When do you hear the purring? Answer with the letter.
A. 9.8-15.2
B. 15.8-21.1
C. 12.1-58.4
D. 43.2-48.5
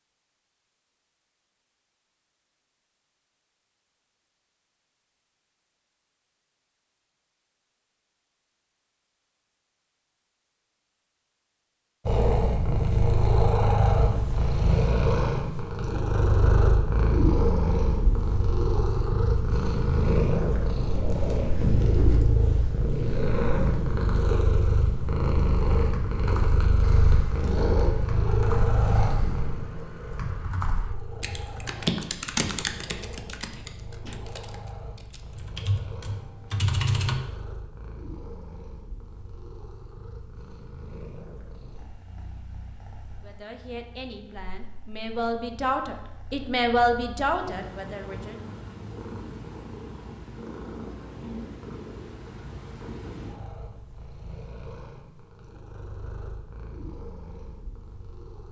C.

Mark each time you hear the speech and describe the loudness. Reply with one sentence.
The speech can be heard from 43.2 to 48.5 s, getting louder then quieter.